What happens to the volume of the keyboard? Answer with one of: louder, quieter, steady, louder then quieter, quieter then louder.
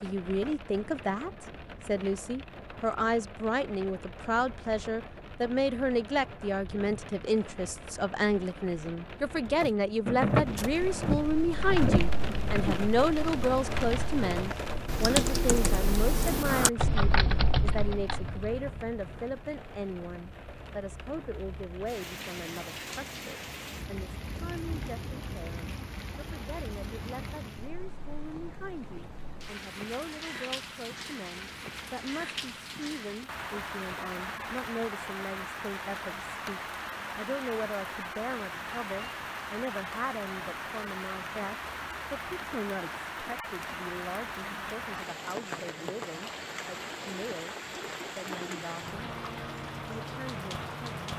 louder.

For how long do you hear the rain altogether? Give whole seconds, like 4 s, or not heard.
51 s.